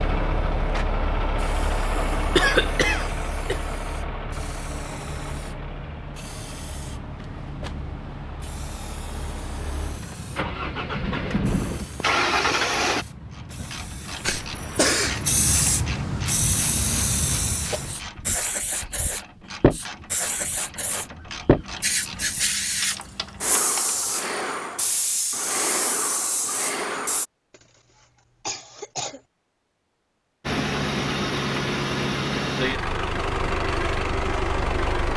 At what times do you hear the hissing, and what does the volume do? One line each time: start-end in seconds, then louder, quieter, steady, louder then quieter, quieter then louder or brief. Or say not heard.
0.0-27.2 louder.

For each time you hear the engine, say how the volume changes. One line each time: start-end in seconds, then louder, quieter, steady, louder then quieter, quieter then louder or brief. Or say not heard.
0.0-13.1 quieter then louder
30.4-35.1 steady.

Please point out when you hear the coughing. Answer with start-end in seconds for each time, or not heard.
2.4-3.6, 14.2-15.2, 27.5-29.2.